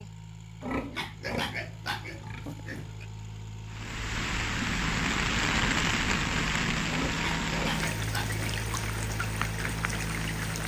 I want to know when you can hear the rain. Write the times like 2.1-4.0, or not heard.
3.6-10.6.